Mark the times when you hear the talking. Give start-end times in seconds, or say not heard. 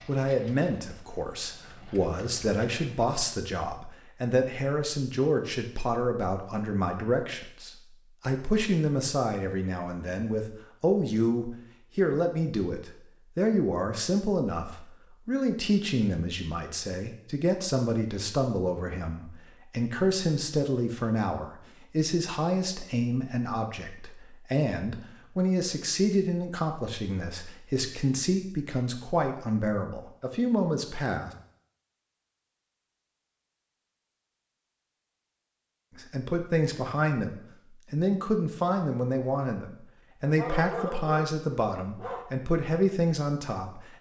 0.1-31.3, 36.0-43.9.